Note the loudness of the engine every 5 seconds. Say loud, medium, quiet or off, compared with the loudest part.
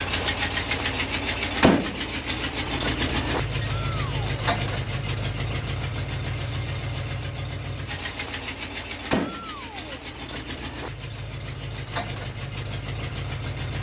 loud, medium, medium.